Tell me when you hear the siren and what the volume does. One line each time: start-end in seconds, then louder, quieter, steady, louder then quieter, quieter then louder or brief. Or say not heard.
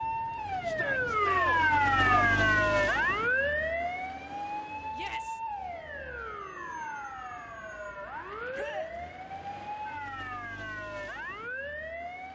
0.0-12.3 quieter.